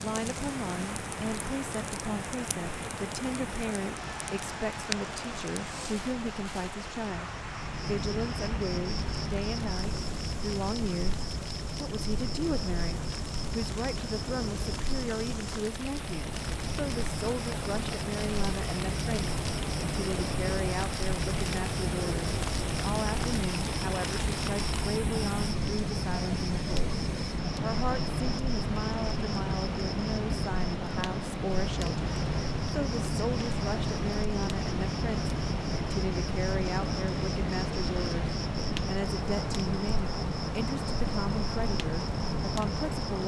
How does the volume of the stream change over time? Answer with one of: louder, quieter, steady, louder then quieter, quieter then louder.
quieter then louder.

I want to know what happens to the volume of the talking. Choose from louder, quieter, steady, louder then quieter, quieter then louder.
steady.